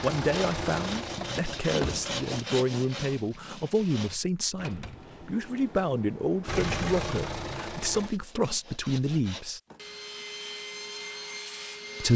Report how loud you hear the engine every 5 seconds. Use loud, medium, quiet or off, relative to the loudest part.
loud, loud, off.